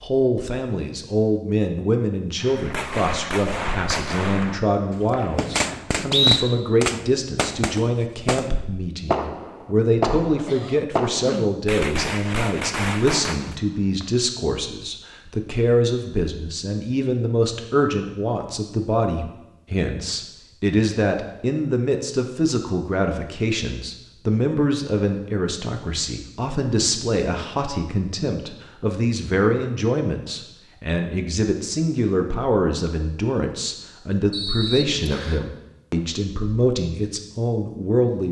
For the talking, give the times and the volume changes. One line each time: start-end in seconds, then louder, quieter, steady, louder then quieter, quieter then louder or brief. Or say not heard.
0.0-38.2 steady.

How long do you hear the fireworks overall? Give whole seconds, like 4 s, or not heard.
11 s.